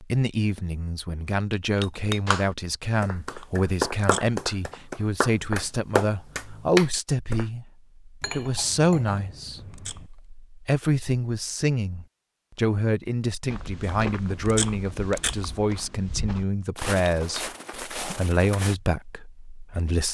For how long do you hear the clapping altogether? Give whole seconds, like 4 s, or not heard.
5 s.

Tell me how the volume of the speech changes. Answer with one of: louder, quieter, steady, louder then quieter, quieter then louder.
steady.